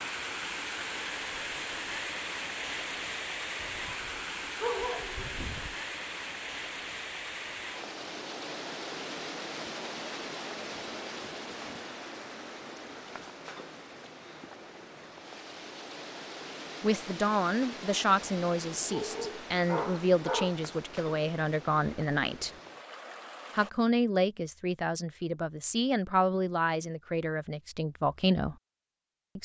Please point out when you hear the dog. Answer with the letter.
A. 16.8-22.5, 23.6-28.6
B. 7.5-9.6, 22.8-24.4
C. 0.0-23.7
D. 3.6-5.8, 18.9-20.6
D.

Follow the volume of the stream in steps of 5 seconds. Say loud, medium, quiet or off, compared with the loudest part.
loud, loud, medium, medium, medium, off.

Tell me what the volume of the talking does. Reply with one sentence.
The loudness of the talking stays about the same.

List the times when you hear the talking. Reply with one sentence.
The talking can be heard from 16.8 to 22.5 s and from 23.6 to 28.6 s.